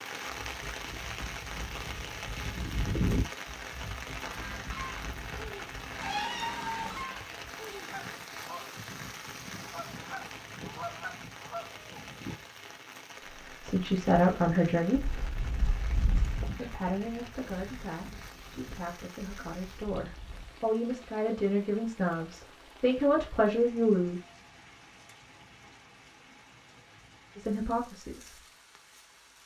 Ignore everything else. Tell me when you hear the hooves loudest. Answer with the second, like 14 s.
3 s.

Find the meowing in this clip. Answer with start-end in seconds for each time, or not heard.
6.0-7.0.